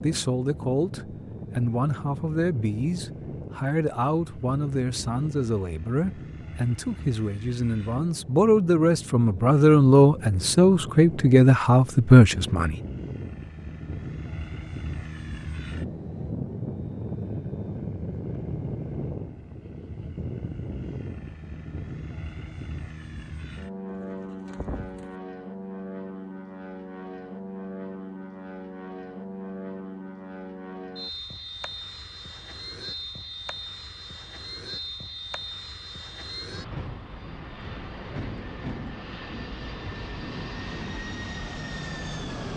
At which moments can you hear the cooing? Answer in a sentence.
The cooing can be heard from 23.9 to 25.1 s.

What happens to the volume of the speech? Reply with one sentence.
The loudness of the speech goes up.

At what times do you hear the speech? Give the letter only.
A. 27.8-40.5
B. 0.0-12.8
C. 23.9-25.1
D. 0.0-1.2
B.